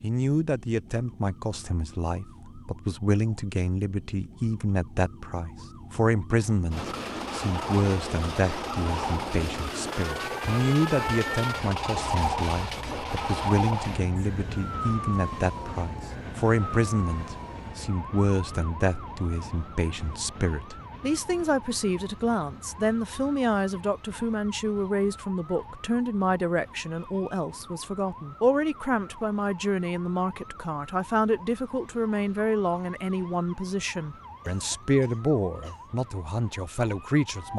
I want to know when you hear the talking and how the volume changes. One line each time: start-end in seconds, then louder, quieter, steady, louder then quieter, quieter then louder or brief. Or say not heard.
0.0-37.5 steady.